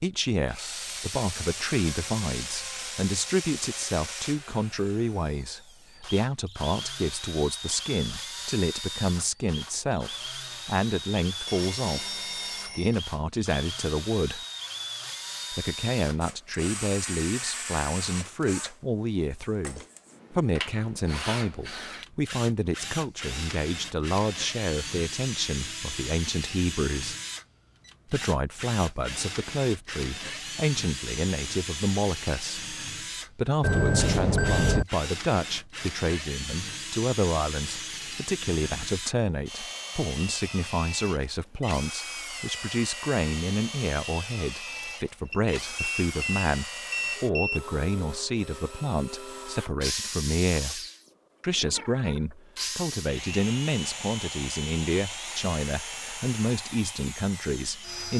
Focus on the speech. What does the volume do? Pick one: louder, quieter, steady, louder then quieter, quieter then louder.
steady.